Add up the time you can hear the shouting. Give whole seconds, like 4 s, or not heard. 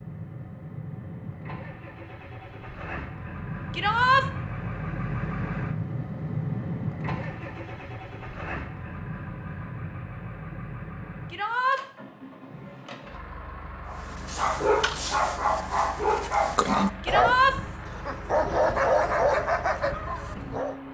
2 s.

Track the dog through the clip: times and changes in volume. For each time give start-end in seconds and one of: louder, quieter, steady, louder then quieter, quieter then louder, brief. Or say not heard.
13.8-20.8 steady.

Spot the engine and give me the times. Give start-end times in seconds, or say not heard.
0.0-20.8.